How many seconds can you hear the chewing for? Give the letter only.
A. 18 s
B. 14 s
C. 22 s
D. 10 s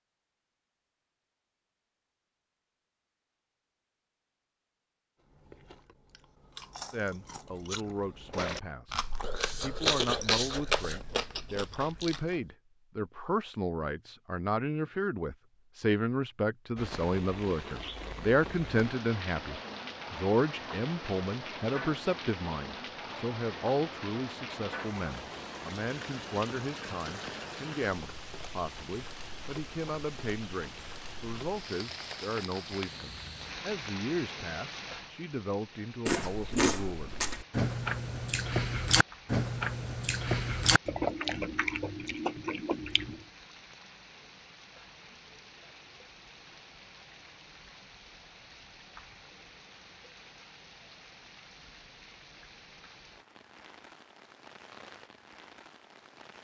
B.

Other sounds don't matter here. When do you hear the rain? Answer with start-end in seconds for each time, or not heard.
16.8-56.3.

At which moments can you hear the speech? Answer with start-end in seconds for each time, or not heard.
6.9-37.1.